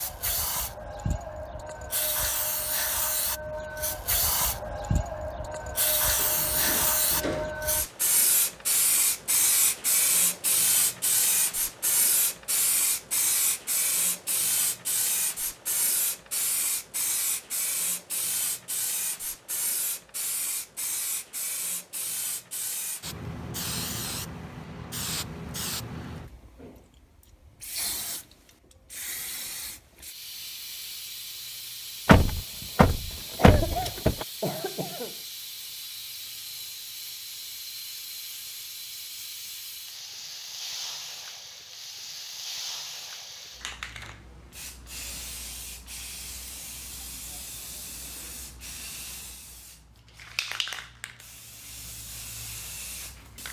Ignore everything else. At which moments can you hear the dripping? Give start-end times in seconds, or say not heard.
not heard.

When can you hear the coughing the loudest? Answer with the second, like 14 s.
34 s.